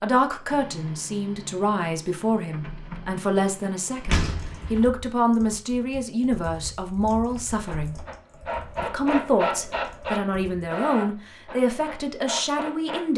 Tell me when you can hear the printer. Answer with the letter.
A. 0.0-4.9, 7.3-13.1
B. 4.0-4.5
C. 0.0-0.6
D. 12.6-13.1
A.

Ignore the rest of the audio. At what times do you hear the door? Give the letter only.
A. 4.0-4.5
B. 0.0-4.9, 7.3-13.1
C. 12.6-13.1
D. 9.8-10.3
A.